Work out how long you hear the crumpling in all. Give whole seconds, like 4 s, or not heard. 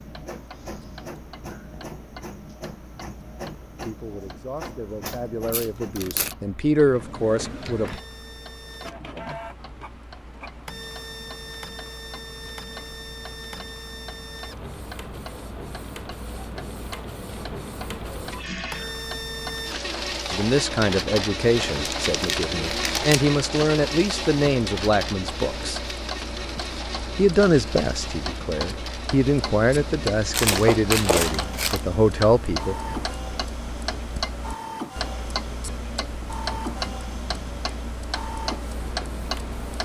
4 s.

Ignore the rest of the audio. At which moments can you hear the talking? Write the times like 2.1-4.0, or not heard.
3.9-8.0, 20.3-25.8, 27.1-33.0.